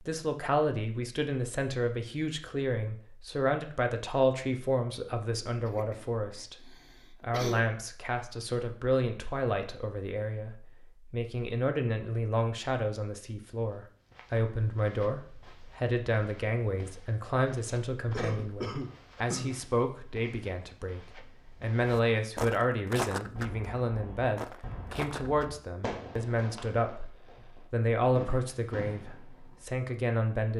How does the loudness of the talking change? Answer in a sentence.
The loudness of the talking stays about the same.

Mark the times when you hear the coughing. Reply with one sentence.
You can hear the coughing from 5.7 to 7.6 s and from 18.1 to 19.6 s.